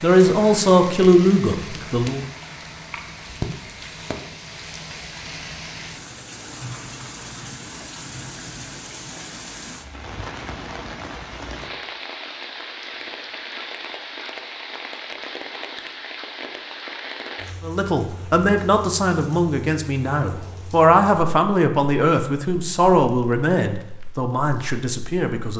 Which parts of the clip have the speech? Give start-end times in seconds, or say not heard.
0.0-2.2, 17.6-25.5.